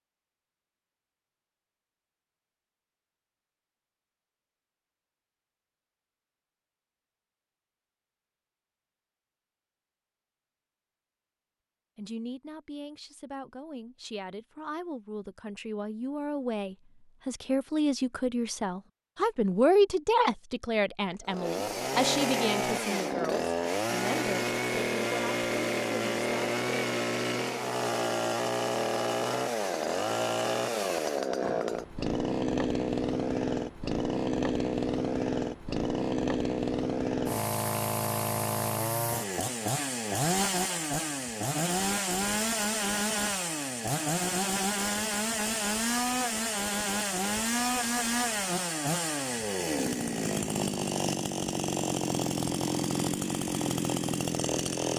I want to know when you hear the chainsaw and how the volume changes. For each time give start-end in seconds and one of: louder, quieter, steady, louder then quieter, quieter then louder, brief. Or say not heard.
21.2-54.9 steady.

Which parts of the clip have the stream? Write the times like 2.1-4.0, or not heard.
not heard.